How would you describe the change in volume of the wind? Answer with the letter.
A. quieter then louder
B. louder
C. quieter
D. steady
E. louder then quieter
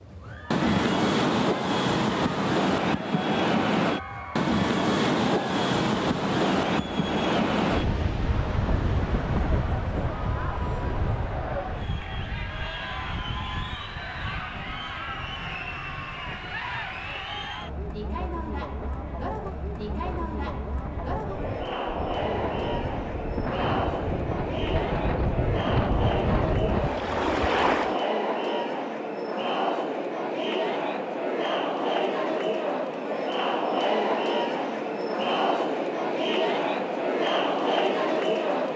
A.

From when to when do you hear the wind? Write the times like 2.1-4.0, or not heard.
0.0-28.0.